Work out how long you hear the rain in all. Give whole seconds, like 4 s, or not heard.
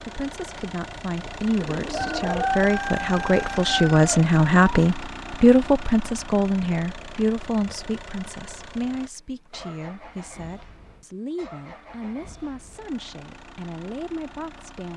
not heard.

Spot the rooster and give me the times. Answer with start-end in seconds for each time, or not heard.
1.6-4.9.